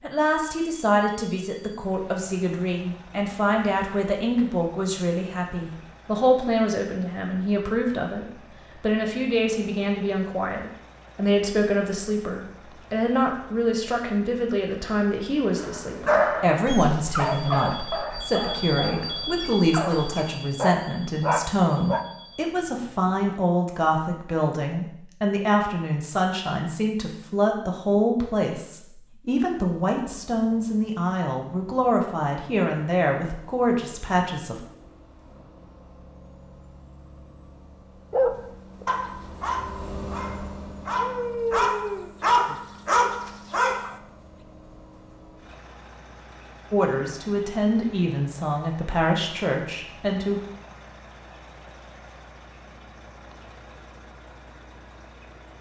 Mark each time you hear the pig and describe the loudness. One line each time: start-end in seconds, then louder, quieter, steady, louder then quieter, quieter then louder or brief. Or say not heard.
not heard.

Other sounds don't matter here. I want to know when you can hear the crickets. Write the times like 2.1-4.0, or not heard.
not heard.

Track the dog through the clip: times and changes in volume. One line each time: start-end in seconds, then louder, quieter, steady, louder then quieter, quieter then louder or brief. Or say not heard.
15.6-22.1 quieter then louder
38.1-44.0 louder.